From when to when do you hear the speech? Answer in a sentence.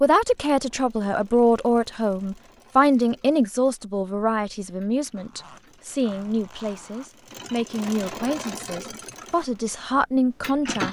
You can hear the speech from 0.0 to 10.8 s.